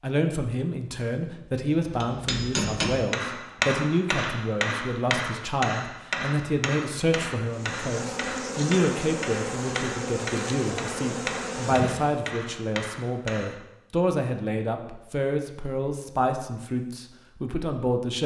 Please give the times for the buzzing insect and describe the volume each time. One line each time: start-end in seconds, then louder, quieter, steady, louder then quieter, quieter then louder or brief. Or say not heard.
7.5-12.2 steady.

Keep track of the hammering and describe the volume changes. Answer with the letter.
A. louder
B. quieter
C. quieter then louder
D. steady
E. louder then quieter
B.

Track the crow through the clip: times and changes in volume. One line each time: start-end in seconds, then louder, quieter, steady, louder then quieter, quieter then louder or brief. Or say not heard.
not heard.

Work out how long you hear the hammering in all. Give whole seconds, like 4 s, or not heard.
12 s.